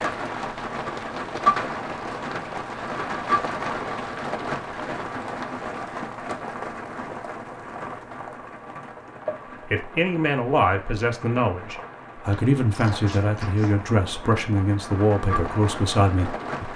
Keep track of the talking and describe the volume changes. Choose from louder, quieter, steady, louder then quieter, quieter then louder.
steady.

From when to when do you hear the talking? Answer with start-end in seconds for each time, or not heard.
9.7-16.7.